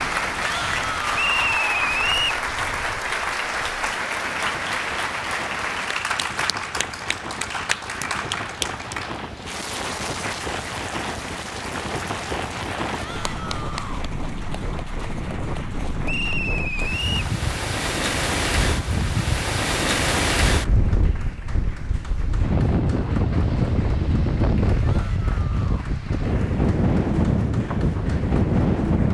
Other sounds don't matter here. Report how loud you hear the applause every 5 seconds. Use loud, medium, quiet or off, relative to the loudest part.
loud, loud, medium, quiet, quiet, quiet.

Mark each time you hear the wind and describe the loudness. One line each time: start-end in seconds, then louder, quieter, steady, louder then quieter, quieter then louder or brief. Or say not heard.
0.0-29.0 louder.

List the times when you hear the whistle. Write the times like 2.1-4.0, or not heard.
1.1-2.4, 16.1-17.3.